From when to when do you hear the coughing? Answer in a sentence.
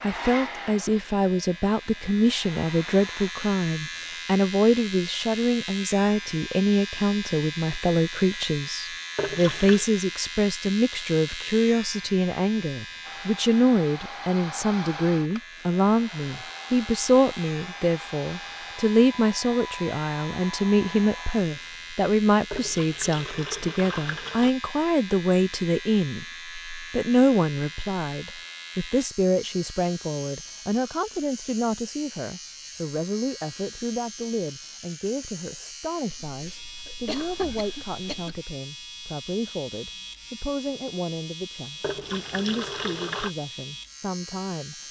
You can hear the coughing from 36.1 to 38.5 s.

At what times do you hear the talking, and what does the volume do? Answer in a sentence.
The talking can be heard from 0.0 to 44.8 s, getting quieter.